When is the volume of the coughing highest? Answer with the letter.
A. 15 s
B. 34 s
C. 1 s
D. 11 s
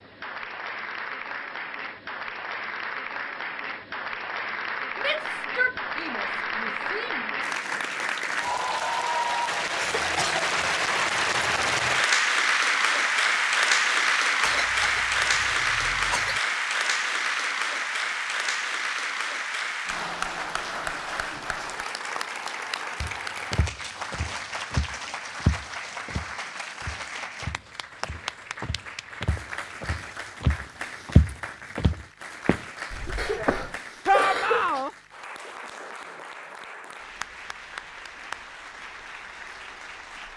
B.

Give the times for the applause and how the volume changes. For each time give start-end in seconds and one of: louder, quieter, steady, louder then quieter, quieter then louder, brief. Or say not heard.
0.0-40.3 louder then quieter.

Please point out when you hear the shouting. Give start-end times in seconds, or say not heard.
5.0-7.3, 34.0-34.9.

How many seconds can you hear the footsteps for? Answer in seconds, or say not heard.
11 s.